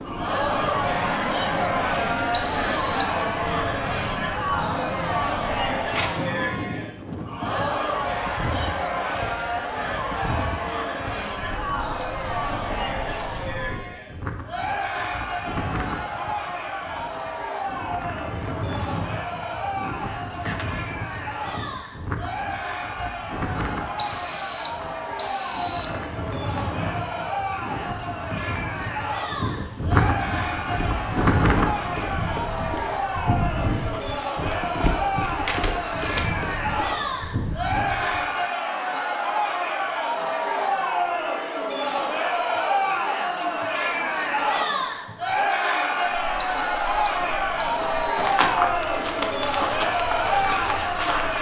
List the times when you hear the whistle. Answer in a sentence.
The whistle can be heard from 2.3 to 3.1 s, from 23.9 to 26.0 s and from 46.4 to 48.1 s.